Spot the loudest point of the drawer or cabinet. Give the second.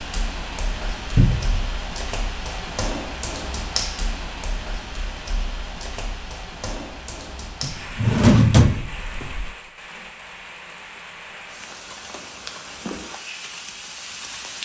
8 s.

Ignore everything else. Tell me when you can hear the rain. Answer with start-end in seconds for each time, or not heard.
0.0-14.6.